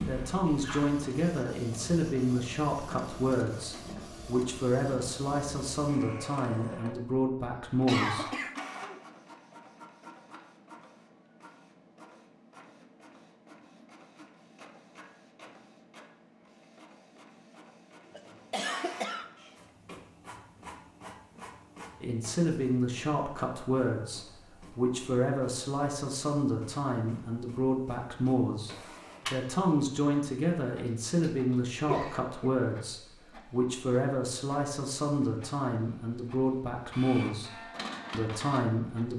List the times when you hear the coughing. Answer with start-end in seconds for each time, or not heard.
7.8-9.1, 18.1-19.5, 31.8-32.5.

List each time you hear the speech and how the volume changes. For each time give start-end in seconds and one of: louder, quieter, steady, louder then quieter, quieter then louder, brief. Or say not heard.
0.1-8.2 steady
22.0-39.1 steady.